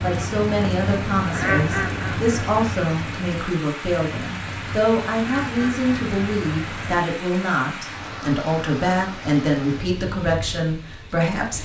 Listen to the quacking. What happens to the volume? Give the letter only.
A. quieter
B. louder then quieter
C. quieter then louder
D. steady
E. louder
A.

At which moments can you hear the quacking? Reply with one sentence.
You can hear the quacking from 0.0 to 7.1 s.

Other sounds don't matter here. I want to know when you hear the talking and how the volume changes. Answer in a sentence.
You can hear the talking from 0.0 to 11.6 s, at a steady volume.